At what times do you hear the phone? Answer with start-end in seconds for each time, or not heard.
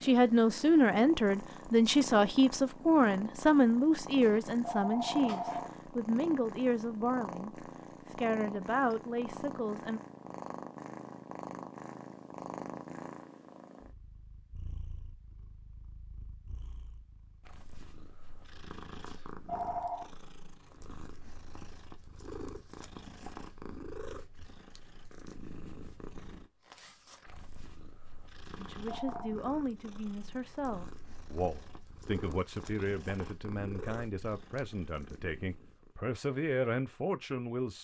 4.2-5.7, 19.1-20.1, 28.4-29.4.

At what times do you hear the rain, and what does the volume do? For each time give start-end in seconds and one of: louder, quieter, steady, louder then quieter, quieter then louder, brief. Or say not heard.
not heard.